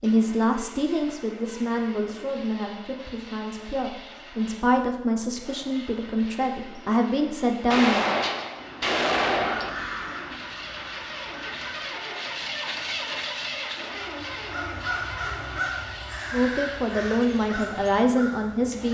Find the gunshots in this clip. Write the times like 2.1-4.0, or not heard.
7.7-9.7.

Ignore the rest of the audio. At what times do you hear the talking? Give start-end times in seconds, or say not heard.
0.0-8.1, 16.3-18.8.